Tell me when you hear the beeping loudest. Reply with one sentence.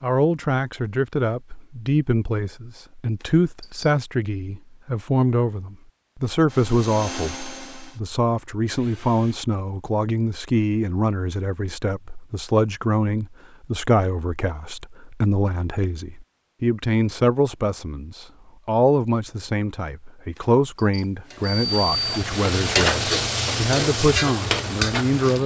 The loudest moment of the beeping is at 22 seconds.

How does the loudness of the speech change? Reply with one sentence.
The loudness of the speech stays about the same.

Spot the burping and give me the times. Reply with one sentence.
The burping can't be heard in this clip.